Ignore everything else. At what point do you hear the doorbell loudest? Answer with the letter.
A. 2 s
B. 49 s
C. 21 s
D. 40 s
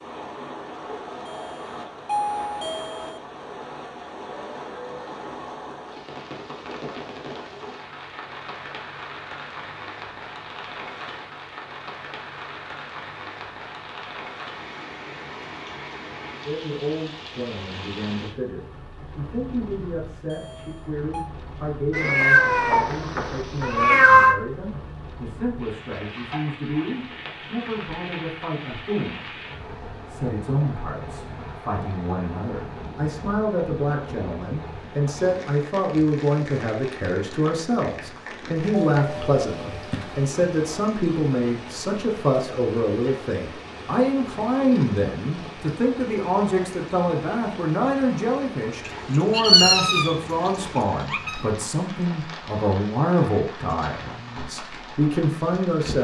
A.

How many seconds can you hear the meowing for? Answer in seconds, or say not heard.
5 s.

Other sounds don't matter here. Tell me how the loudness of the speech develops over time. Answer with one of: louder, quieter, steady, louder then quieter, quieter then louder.
louder.